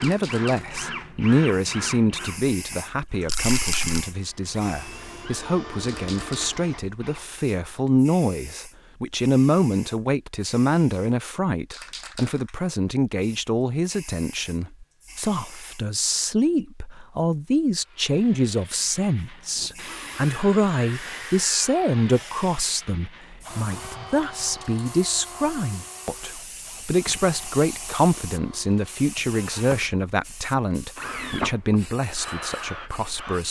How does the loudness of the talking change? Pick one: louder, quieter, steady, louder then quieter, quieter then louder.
steady.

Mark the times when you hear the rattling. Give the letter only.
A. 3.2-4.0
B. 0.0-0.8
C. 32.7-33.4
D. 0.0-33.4
A.